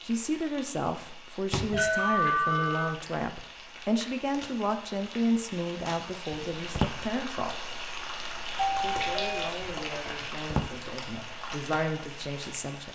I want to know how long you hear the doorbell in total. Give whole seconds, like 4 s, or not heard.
2 s.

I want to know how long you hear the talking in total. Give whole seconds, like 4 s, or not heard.
12 s.